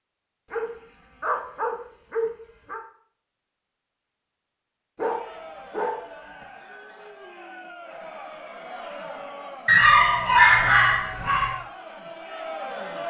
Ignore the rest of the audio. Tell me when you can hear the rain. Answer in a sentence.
You can't hear the rain here.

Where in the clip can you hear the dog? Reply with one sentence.
You can hear the dog from 0.5 to 2.8 s, from 5.0 to 6.5 s and from 9.7 to 11.6 s.